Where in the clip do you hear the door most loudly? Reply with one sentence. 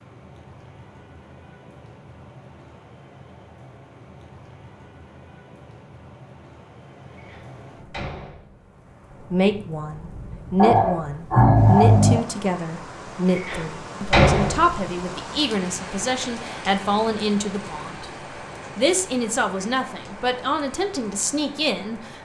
The volume of the door peaks at 14 seconds.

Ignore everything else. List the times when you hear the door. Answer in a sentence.
You can hear the door from 7.2 to 8.7 s and from 13.3 to 14.8 s.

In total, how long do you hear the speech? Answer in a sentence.
You can hear the speech for 12 seconds altogether.